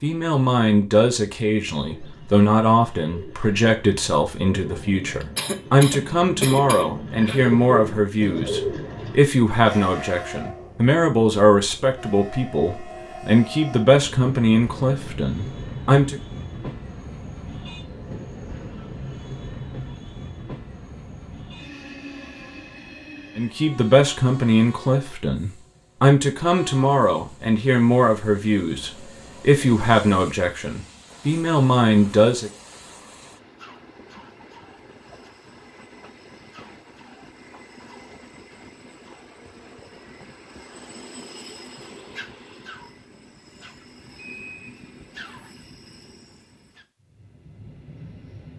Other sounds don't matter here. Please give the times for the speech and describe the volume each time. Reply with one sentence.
The speech can be heard from 0.0 to 16.2 s, at a steady volume; and from 23.4 to 32.5 s, at a steady volume.